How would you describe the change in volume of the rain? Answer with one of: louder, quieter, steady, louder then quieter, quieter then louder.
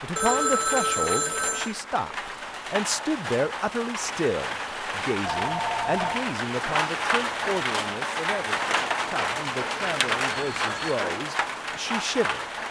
louder.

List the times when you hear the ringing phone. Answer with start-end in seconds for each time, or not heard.
0.1-1.8, 5.2-6.2, 10.3-11.0.